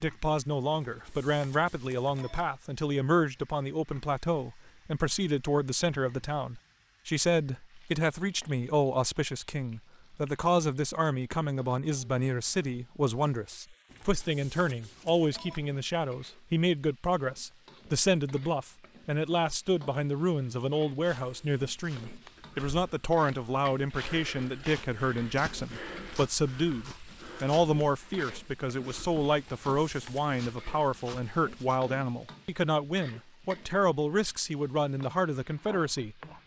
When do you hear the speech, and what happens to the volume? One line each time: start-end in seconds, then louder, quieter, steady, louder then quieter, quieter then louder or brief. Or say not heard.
0.0-36.4 steady.